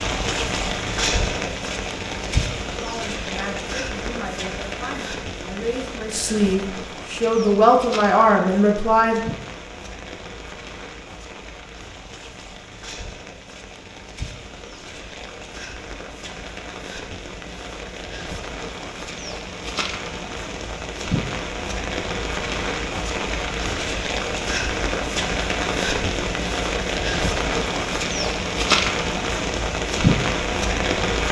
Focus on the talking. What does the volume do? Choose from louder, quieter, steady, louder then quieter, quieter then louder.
louder.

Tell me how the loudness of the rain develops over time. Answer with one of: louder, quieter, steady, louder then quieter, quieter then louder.
quieter then louder.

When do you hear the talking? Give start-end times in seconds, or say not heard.
2.2-9.2.